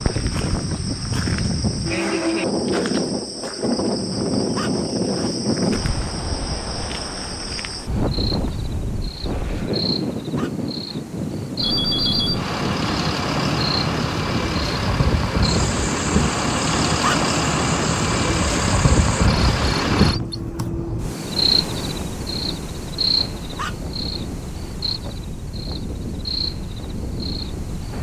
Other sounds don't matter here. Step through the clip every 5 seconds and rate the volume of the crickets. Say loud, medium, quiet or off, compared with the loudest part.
medium, medium, medium, medium, loud, medium.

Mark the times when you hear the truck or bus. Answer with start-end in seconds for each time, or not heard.
11.6-20.2.